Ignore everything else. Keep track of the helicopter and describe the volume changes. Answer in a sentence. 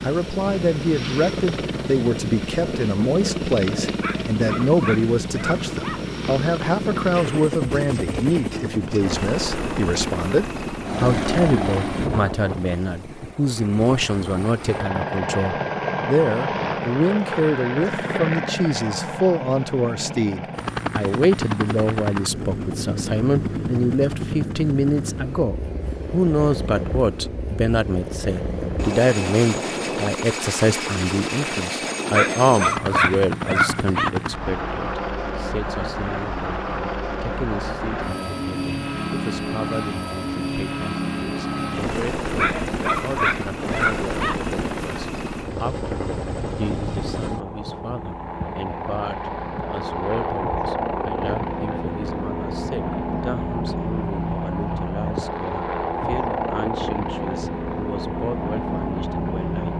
The loudness of the helicopter stays about the same.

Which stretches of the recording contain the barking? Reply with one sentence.
The barking can be heard from 4.0 to 6.0 s, from 32.1 to 34.1 s and from 42.4 to 44.4 s.